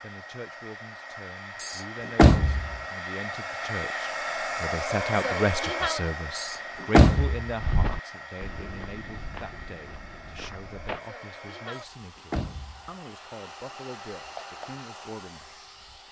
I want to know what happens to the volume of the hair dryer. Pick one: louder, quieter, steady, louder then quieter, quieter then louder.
louder then quieter.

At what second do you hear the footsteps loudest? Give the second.
8 s.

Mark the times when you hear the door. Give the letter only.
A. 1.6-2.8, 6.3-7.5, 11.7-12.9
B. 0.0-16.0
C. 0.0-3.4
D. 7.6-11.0
A.